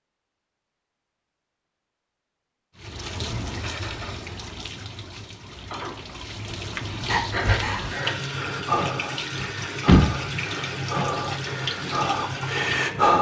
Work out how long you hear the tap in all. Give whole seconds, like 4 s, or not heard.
10 s.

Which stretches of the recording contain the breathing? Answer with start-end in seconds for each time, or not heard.
7.0-13.1.